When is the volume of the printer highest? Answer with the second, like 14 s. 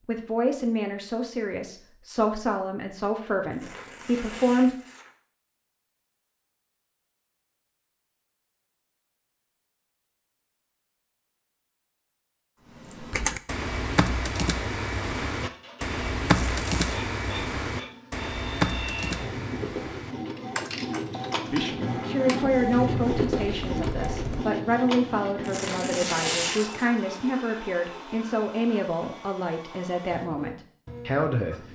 23 s.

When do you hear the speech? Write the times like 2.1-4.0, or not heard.
0.1-4.7, 21.4-31.6.